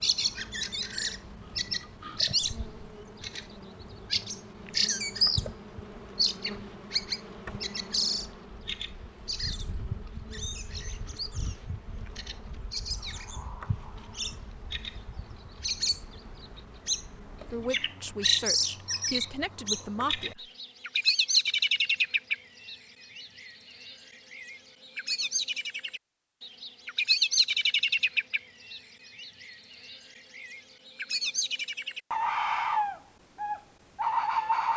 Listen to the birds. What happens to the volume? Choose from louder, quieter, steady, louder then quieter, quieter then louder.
quieter then louder.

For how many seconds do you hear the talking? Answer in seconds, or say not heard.
3 s.